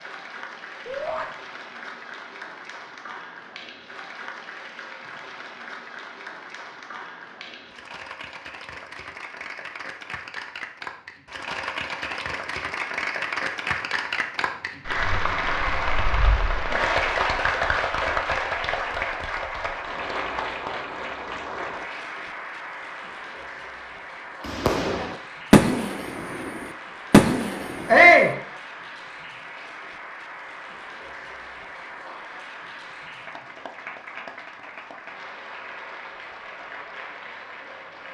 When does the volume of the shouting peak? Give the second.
28 s.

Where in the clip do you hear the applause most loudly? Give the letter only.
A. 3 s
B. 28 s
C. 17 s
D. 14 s
C.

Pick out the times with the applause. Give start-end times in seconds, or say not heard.
0.0-38.1.